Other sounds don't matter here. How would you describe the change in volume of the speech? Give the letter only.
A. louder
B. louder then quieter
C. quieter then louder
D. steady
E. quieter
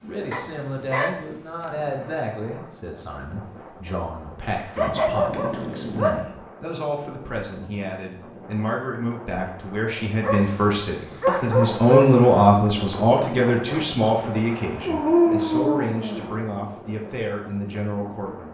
B.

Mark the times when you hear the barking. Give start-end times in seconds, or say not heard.
0.3-1.2, 4.8-6.2, 10.2-12.2, 14.8-16.5.